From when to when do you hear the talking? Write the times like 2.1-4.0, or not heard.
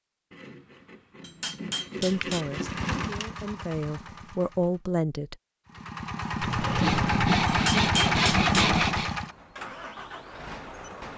2.0-5.3.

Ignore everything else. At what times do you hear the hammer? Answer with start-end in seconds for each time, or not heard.
1.2-2.5, 7.5-8.7.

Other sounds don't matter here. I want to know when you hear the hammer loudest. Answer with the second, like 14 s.
8 s.